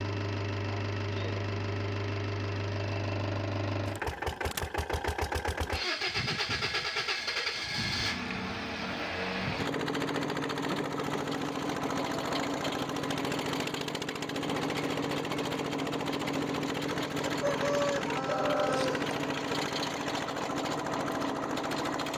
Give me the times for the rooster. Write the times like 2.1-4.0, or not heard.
17.2-19.1.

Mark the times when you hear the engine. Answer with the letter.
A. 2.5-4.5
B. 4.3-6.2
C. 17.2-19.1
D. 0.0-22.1
D.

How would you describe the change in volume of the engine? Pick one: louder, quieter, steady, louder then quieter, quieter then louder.
steady.